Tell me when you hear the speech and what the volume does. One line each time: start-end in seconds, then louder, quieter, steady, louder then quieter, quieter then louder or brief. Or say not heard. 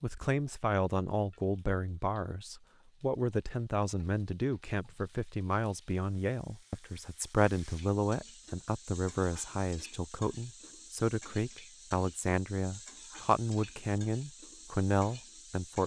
0.0-15.8 steady.